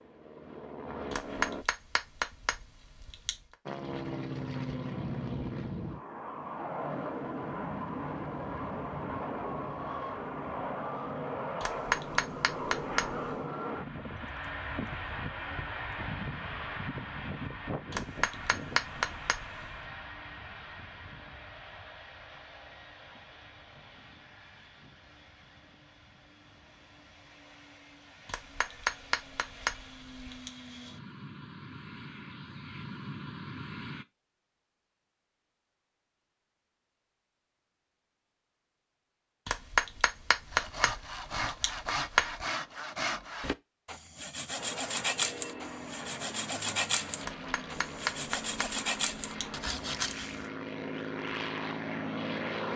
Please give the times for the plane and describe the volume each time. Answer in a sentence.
You can hear the plane briefly from 0.0 to 1.6 s; from 3.6 to 34.0 s, getting quieter then louder; and from 44.5 to 52.7 s, getting louder.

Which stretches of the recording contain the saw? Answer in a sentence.
The saw can be heard from 40.5 to 50.5 s.